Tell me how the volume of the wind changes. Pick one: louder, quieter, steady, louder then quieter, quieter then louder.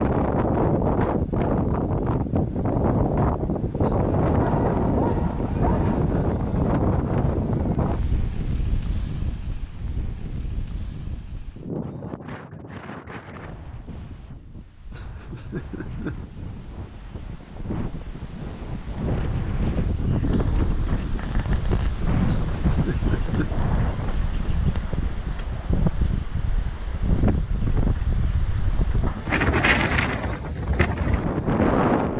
quieter then louder.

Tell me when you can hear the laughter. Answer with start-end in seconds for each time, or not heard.
3.8-4.5, 14.9-16.1, 22.2-23.5.